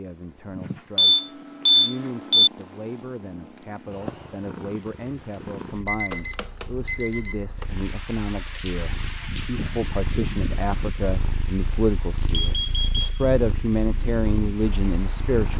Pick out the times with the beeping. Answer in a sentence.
You can hear the beeping from 0.9 to 2.5 s, from 5.8 to 7.7 s and from 12.3 to 13.2 s.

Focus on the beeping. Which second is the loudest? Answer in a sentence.
The loudest moment of the beeping is at 2 seconds.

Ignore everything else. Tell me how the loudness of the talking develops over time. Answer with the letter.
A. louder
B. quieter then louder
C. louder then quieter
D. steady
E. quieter
A.